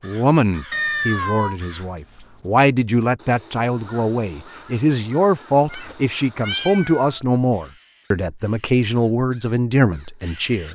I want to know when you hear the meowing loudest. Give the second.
1 s.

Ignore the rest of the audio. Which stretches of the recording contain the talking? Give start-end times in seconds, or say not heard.
0.0-10.6.